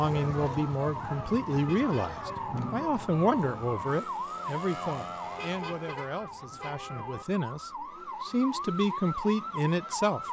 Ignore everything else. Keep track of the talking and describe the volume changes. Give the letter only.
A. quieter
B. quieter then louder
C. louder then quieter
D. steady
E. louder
B.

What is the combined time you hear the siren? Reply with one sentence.
You can hear the siren for 10 seconds altogether.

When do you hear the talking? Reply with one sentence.
The talking can be heard from 0.0 to 10.2 s.